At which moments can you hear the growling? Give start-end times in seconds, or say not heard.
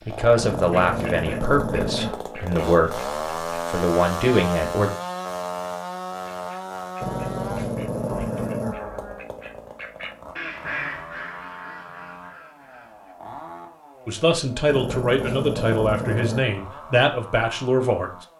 0.3-2.2, 7.0-9.2, 14.7-16.6.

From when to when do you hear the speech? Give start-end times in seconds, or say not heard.
0.1-5.0, 14.1-18.1.